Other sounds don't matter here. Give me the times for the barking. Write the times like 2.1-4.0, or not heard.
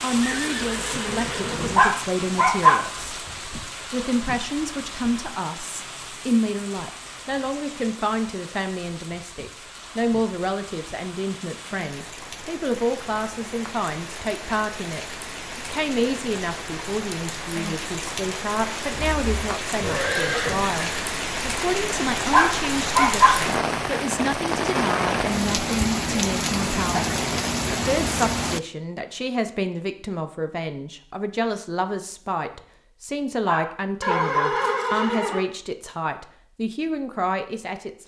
1.8-2.8, 22.3-23.4, 33.5-34.5.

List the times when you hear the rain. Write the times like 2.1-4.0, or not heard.
0.0-28.6.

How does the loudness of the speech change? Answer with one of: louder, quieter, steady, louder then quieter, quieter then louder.
steady.